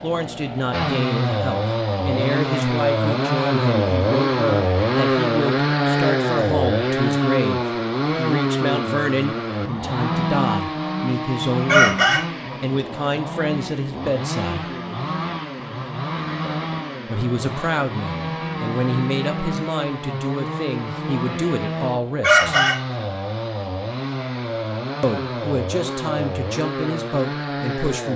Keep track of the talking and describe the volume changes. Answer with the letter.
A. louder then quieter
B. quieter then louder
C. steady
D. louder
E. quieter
C.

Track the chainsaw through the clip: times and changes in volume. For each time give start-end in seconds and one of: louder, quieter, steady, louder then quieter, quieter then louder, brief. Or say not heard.
0.0-28.1 quieter.